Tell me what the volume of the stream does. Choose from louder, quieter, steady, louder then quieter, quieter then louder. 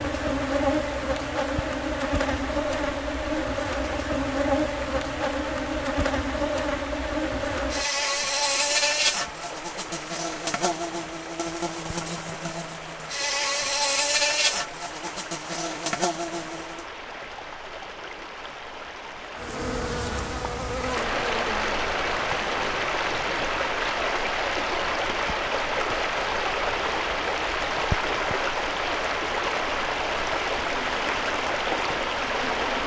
louder.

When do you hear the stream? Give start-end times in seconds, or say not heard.
0.0-32.8.